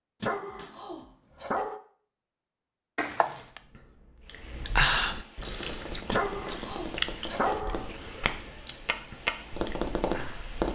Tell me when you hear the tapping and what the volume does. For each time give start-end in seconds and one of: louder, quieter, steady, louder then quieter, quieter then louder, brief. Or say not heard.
5.5-10.7 louder.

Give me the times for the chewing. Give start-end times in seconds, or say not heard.
3.4-10.4.